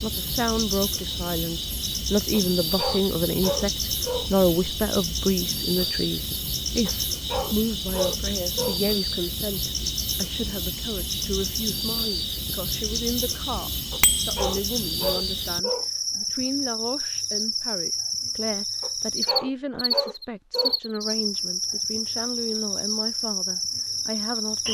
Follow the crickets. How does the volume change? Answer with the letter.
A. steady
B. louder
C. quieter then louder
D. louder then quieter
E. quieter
A.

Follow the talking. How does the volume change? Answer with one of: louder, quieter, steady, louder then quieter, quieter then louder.
quieter.